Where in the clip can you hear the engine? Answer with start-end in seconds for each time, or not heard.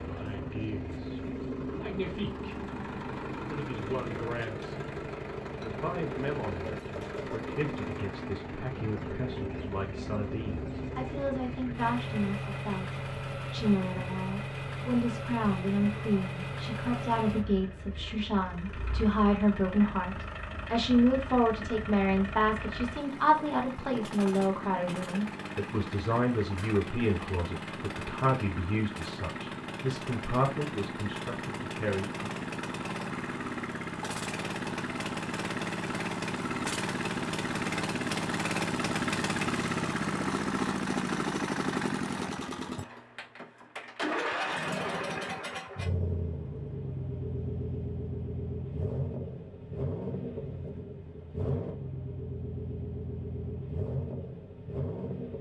0.0-55.3.